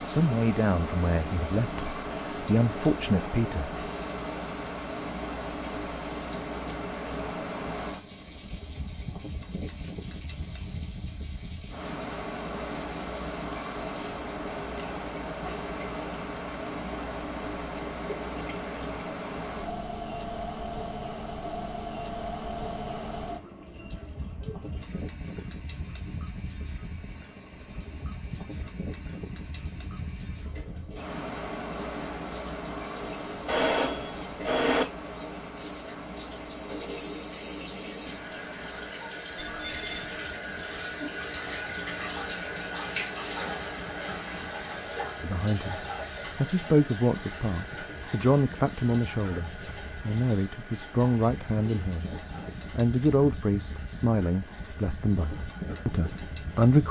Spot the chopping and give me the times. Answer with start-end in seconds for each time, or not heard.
not heard.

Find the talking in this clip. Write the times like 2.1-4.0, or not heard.
0.1-3.7, 45.2-56.8.